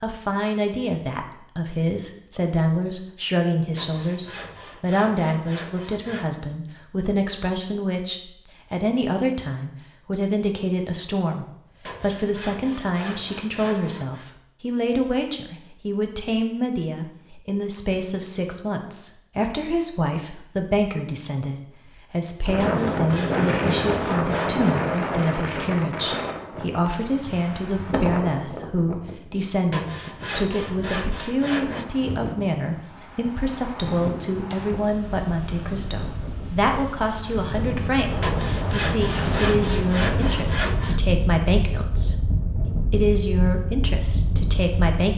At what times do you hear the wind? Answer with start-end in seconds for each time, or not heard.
22.4-45.1.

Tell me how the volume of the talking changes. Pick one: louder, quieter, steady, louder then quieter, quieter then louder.
steady.